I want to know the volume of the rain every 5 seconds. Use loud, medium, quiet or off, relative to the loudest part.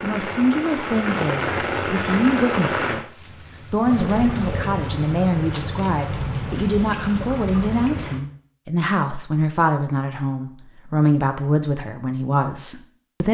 loud, loud, off.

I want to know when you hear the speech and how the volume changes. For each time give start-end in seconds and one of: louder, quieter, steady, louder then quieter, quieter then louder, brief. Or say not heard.
0.0-13.2 steady.